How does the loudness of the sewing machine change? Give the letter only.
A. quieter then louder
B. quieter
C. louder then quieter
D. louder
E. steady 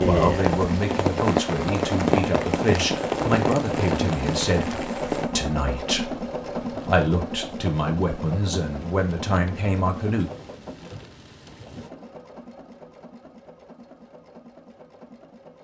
B.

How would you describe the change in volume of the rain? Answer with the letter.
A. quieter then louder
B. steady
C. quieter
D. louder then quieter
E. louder
C.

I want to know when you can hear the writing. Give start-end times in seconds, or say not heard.
not heard.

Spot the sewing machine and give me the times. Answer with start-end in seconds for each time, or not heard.
0.0-15.6.